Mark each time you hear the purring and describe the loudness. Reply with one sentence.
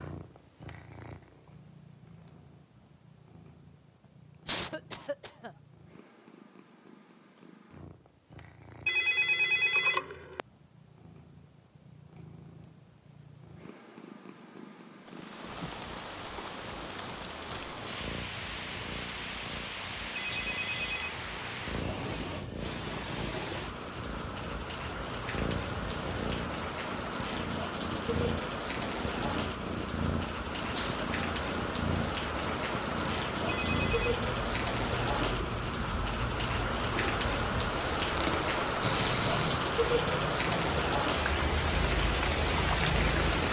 You can hear the purring from 0.0 to 43.4 s, getting louder.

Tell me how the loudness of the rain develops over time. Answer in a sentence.
The volume of the rain goes up.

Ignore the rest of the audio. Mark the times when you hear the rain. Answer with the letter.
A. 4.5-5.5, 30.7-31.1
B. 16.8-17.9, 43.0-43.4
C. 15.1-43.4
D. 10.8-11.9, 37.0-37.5
C.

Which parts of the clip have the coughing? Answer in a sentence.
You can hear the coughing from 4.5 to 5.5 s and from 30.7 to 31.1 s.